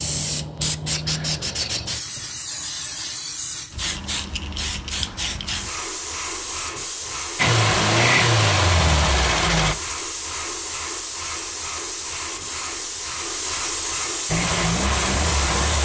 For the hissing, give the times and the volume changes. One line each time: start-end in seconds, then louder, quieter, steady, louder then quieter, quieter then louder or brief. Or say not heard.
0.0-15.7 steady.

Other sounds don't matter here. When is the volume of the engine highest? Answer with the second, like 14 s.
8 s.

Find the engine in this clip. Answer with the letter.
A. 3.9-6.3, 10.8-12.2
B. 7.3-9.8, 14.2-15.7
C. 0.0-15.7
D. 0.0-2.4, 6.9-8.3
B.